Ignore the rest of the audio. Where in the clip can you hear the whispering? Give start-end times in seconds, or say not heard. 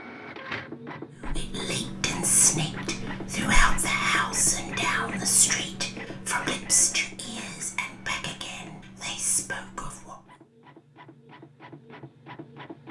1.2-10.2.